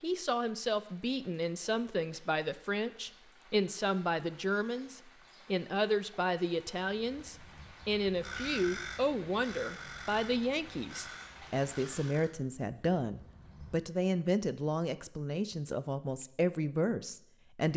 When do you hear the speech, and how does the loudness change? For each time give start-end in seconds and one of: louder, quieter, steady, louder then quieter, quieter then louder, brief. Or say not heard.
0.0-17.7 steady.